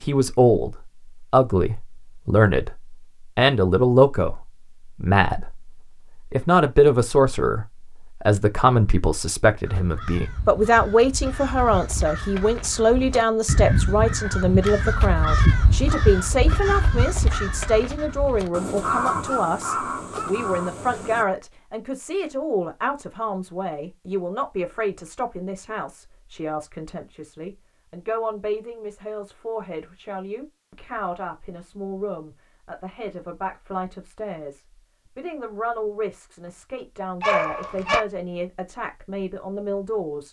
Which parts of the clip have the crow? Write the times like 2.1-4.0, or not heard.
9.7-21.2.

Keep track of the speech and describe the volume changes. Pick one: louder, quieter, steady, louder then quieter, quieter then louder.
quieter.